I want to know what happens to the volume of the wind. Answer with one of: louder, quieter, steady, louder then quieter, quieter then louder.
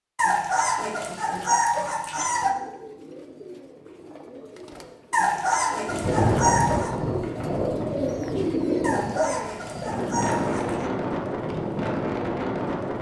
quieter then louder.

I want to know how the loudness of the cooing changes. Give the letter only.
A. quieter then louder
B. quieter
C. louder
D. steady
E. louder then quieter
C.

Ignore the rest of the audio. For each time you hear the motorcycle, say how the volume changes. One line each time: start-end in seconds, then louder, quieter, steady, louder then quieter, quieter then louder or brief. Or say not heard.
not heard.